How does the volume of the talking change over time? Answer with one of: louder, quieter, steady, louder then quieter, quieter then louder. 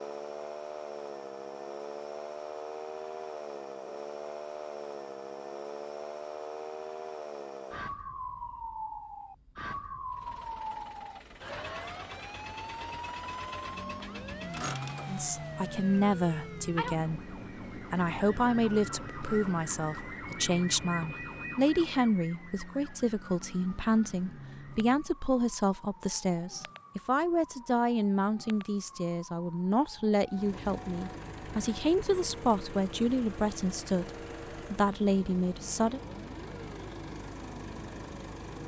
steady.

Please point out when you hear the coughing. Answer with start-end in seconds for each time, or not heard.
not heard.